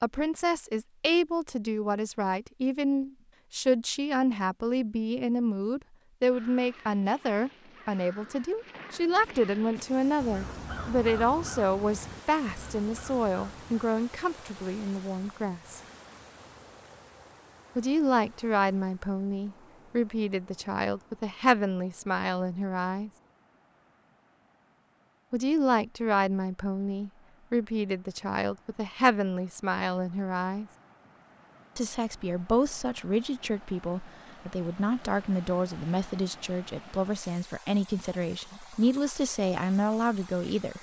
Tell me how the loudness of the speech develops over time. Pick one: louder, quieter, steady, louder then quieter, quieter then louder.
steady.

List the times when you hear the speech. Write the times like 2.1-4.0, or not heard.
0.0-15.8, 17.8-23.1, 25.3-30.6, 31.8-40.7.